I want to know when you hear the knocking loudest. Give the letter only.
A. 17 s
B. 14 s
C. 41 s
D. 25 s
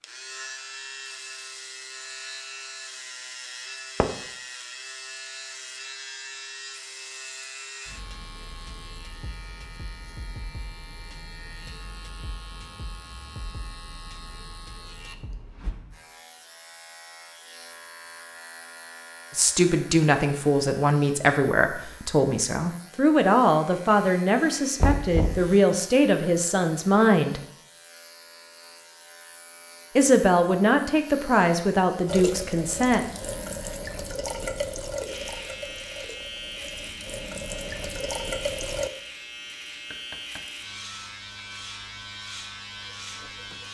D.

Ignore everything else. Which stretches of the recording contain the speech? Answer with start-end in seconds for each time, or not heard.
19.3-27.4, 29.9-33.0.